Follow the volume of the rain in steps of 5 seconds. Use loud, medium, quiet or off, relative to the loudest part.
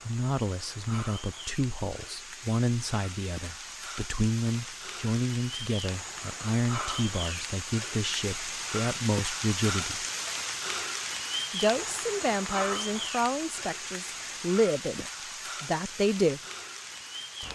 medium, loud, loud, medium.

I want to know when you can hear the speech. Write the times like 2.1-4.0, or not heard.
0.1-10.1, 11.5-16.4.